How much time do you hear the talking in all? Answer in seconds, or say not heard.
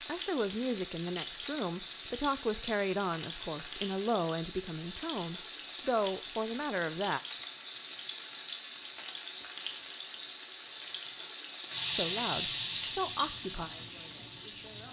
10 s.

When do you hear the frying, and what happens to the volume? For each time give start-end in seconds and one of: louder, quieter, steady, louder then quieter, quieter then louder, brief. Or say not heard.
0.0-14.8 steady.